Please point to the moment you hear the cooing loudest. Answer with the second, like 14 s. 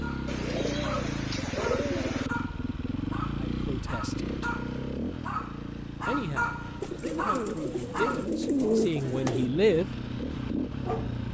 9 s.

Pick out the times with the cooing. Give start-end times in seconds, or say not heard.
0.2-2.3, 6.8-9.4.